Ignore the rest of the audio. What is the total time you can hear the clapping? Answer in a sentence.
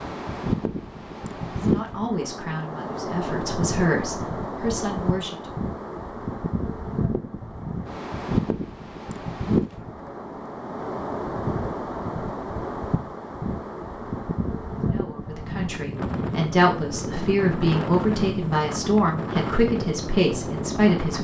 The clapping can't be heard in this clip.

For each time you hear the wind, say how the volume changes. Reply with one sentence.
The wind can be heard from 0.0 to 21.1 s, at a steady volume.